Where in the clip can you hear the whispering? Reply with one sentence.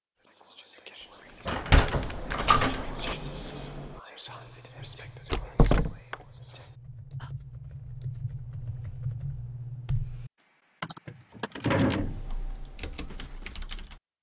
The whispering can be heard from 0.2 to 7.3 s.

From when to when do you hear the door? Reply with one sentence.
The door can be heard from 1.4 to 3.1 s, from 5.3 to 6.2 s and from 11.1 to 12.2 s.